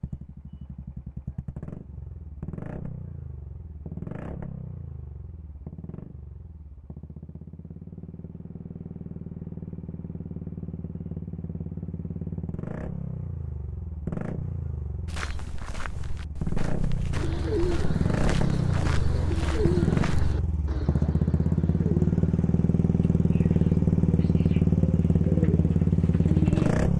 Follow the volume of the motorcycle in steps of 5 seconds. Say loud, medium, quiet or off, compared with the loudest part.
quiet, quiet, quiet, medium, loud, loud.